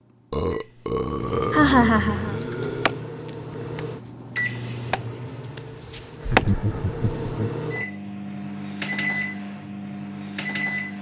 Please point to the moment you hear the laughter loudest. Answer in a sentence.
The volume of the laughter peaks at 2 seconds.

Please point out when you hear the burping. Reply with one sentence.
You can hear the burping from 0.3 to 3.0 s.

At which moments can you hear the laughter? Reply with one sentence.
You can hear the laughter from 1.5 to 2.4 s and from 6.2 to 7.6 s.